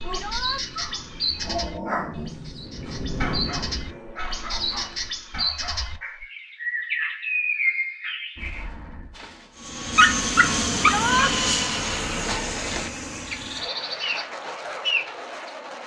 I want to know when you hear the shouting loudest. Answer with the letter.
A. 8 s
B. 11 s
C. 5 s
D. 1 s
B.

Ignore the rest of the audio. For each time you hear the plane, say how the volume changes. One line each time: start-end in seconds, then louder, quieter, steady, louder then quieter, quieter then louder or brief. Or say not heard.
0.0-5.3 louder then quieter
9.6-15.8 quieter.